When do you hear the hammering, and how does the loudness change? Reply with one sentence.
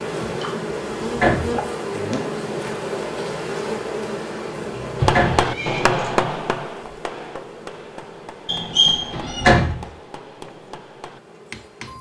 You can hear the hammering from 5.0 to 11.9 s, getting quieter.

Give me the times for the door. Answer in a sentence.
The door can be heard from 0.8 to 1.6 s, from 4.5 to 5.5 s and from 8.8 to 9.8 s.